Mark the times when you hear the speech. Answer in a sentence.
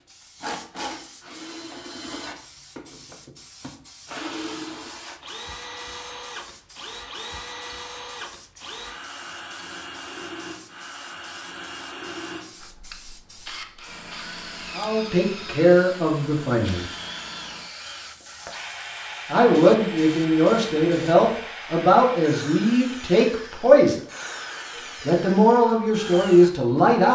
The speech can be heard from 14.8 to 16.9 s, from 19.3 to 23.9 s and from 25.1 to 27.0 s.